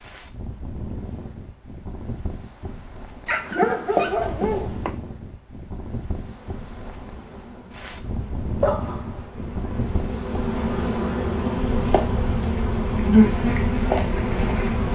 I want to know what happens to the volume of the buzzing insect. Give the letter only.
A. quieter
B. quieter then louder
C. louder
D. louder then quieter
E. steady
C.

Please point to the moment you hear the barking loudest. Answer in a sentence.
The loudest moment of the barking is at 4 seconds.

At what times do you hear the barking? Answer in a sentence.
You can hear the barking from 3.2 to 5.0 s and from 8.6 to 9.3 s.